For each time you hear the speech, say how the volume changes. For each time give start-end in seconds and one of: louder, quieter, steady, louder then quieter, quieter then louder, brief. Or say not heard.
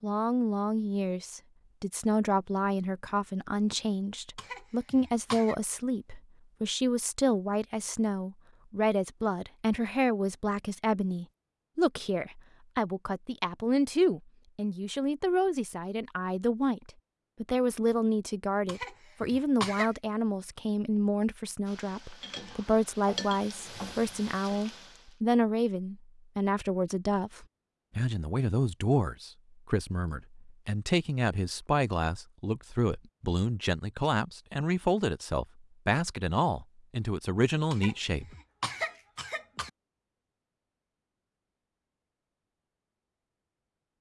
0.0-38.2 steady.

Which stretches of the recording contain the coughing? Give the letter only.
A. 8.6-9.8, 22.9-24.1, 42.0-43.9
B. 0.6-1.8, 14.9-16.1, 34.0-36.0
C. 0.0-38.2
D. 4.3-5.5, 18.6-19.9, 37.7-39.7
D.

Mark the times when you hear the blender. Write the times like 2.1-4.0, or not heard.
not heard.